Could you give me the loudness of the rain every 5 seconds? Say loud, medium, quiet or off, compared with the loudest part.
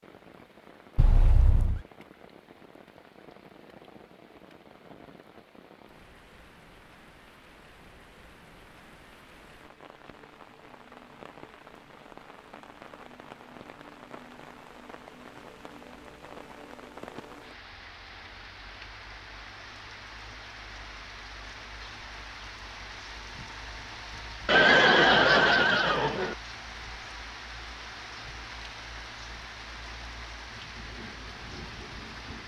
medium, medium, medium, loud, loud, loud, loud.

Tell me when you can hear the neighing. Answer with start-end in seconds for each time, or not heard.
0.9-1.8, 24.4-26.4.